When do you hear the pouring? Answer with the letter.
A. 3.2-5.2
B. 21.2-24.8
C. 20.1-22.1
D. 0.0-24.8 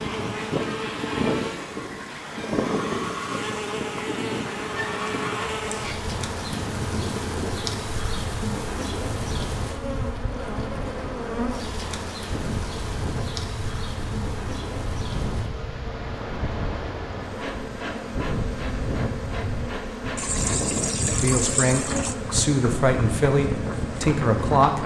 C.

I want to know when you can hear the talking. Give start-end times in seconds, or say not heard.
21.2-24.8.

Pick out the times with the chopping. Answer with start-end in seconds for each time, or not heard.
not heard.